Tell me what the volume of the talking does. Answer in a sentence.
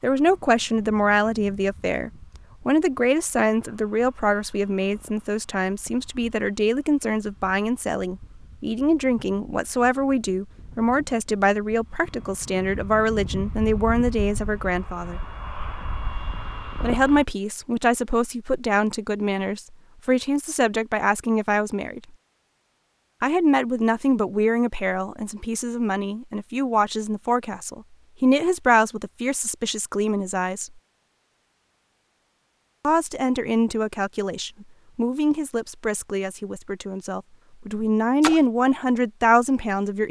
The volume of the talking stays about the same.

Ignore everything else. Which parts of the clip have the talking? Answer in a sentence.
You can hear the talking from 0.0 to 15.2 s, from 16.8 to 22.0 s, from 23.2 to 30.7 s and from 32.8 to 40.0 s.